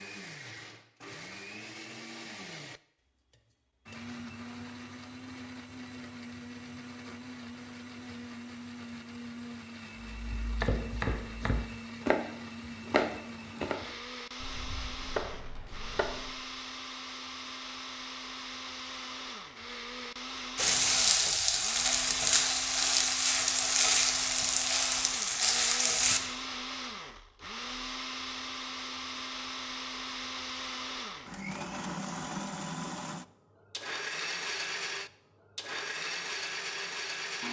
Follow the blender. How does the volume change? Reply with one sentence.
The loudness of the blender goes up.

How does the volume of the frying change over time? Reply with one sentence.
The volume of the frying stays about the same.